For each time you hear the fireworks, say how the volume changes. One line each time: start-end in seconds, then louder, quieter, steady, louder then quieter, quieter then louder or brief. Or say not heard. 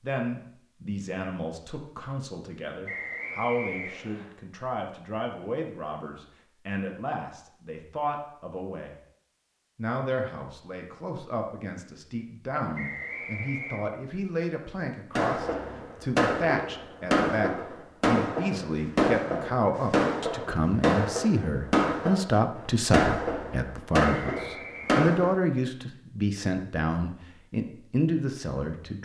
15.2-25.3 steady.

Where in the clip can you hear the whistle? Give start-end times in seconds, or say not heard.
2.9-4.3, 12.8-13.8, 24.2-25.0.